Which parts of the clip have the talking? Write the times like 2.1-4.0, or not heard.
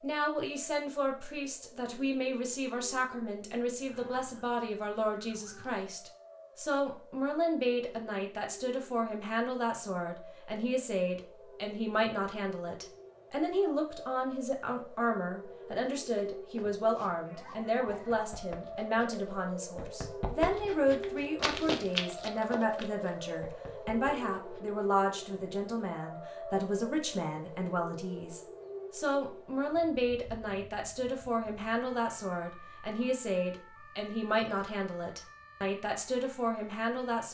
0.0-37.2.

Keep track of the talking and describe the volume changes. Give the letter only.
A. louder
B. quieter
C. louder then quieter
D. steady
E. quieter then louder
D.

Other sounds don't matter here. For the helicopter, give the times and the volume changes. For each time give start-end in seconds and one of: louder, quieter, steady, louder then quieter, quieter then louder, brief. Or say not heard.
not heard.